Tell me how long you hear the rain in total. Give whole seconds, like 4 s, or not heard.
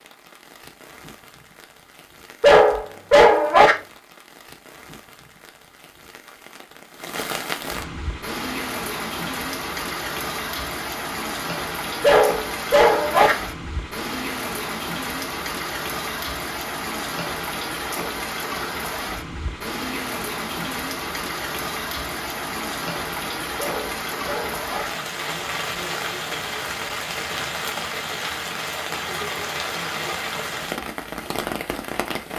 32 s.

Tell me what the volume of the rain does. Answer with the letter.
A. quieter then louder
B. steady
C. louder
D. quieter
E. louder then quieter
C.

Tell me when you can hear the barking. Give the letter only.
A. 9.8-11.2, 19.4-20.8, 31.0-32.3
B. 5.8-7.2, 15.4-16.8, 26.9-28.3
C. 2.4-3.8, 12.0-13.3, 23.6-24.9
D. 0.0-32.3
C.